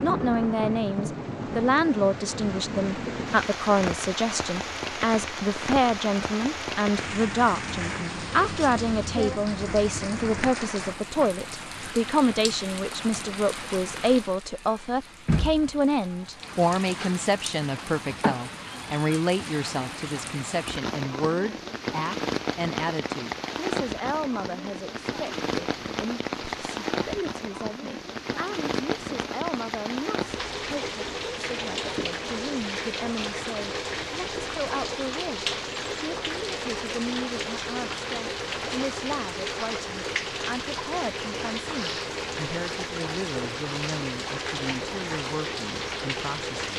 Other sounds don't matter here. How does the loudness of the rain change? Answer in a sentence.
The volume of the rain stays about the same.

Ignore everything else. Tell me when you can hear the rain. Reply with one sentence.
The rain can be heard from 0.0 to 46.7 s.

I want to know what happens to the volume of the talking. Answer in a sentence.
The loudness of the talking goes down.